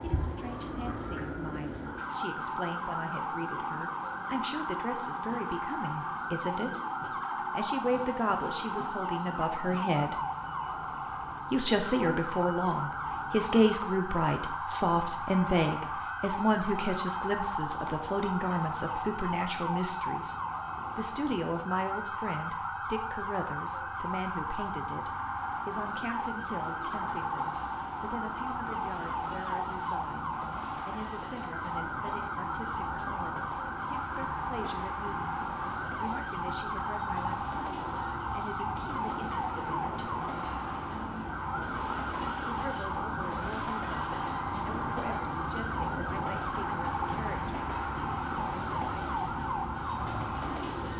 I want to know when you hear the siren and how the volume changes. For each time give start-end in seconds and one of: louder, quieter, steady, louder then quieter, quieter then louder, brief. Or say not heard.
0.0-50.9 steady.